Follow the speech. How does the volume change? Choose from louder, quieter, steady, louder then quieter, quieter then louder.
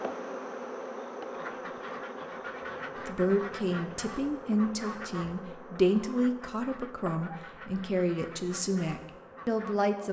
steady.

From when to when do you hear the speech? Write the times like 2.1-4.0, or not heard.
3.0-10.0.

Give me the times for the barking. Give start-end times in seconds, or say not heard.
not heard.